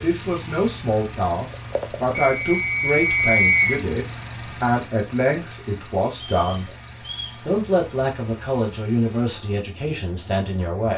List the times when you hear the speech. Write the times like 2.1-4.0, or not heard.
0.0-6.7, 7.4-10.9.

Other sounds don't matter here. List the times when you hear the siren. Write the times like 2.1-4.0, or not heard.
not heard.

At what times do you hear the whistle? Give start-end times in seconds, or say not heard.
2.1-3.8, 6.2-7.4.